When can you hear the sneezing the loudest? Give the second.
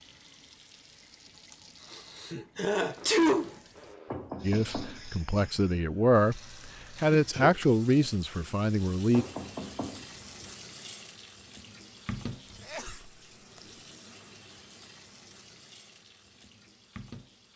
3 s.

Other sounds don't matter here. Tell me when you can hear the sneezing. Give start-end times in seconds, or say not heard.
1.9-4.0, 7.2-8.1, 12.6-13.8.